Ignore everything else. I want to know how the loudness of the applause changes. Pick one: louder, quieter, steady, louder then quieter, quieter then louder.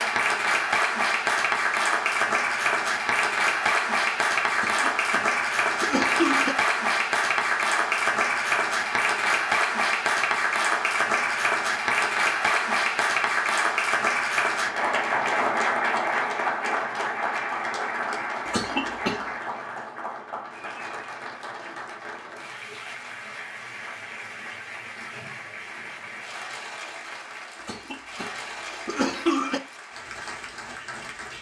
quieter.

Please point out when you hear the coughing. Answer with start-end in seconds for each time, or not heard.
4.5-6.5, 18.4-19.3, 27.6-29.6.